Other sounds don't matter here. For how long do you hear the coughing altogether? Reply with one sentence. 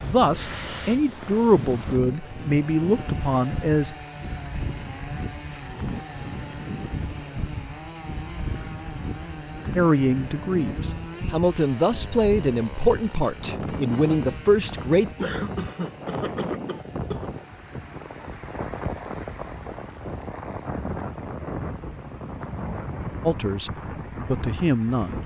The coughing can be heard for 2 seconds in total.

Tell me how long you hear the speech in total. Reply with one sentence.
The speech can be heard for 11 seconds in total.